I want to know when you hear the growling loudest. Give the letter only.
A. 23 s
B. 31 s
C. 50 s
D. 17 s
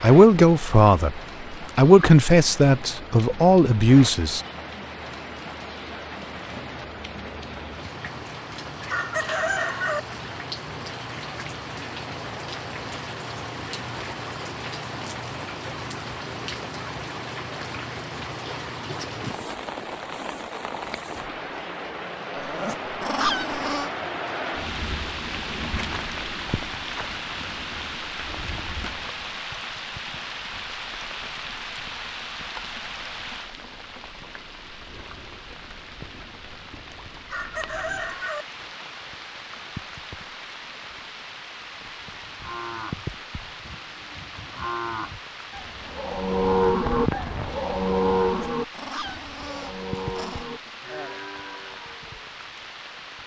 A.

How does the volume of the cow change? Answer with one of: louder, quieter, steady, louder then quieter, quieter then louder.
louder then quieter.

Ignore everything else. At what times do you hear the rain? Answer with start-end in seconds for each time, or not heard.
0.0-53.2.